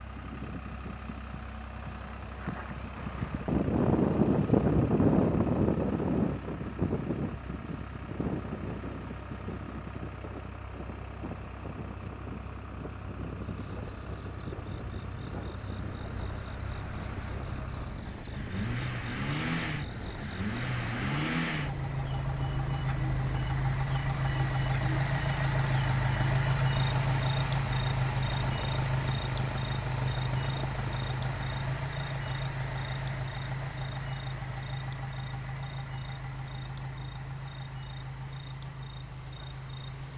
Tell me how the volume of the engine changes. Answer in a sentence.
The volume of the engine goes up, then down.